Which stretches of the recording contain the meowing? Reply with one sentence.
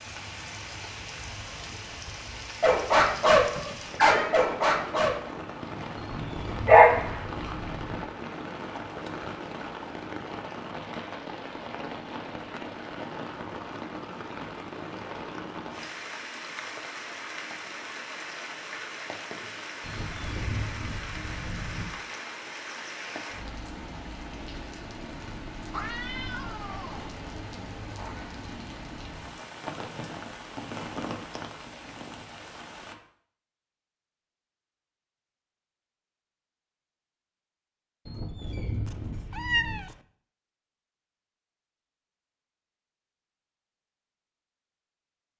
You can hear the meowing from 3.4 to 4.5 s, from 25.7 to 27.2 s and from 38.9 to 40.0 s.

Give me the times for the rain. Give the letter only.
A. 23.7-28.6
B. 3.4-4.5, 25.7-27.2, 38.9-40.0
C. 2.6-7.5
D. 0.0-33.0
D.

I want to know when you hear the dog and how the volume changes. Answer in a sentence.
You can hear the dog from 2.6 to 7.5 s, getting quieter then louder.